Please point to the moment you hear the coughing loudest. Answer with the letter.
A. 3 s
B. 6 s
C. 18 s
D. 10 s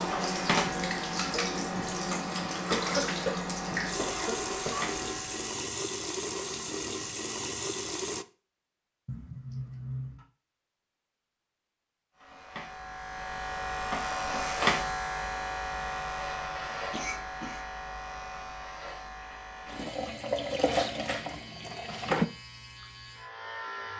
A.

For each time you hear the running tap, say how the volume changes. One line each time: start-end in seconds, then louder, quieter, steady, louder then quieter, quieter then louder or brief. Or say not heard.
0.0-8.2 steady
19.6-22.3 brief.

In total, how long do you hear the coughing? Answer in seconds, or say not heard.
4 s.